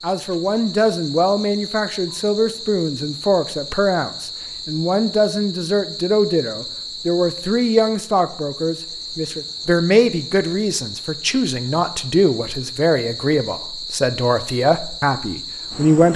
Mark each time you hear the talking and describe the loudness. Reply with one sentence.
The talking can be heard from 0.0 to 16.1 s, at a steady volume.